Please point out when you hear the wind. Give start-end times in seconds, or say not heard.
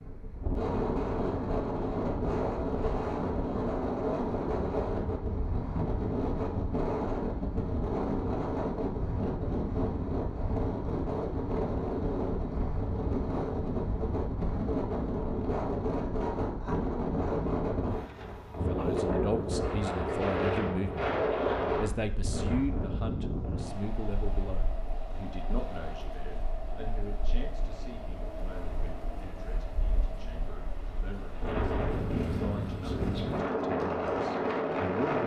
0.0-35.2.